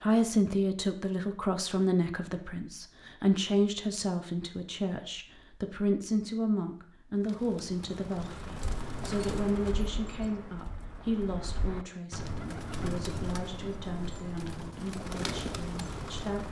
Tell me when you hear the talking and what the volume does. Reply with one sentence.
You can hear the talking from 0.0 to 16.4 s, getting quieter.